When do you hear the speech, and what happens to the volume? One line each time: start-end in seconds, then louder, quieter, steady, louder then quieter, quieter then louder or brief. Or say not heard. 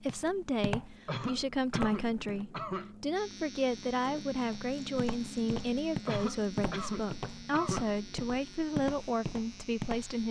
0.0-10.2 steady.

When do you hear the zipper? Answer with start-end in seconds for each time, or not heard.
not heard.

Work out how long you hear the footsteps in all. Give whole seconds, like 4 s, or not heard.
8 s.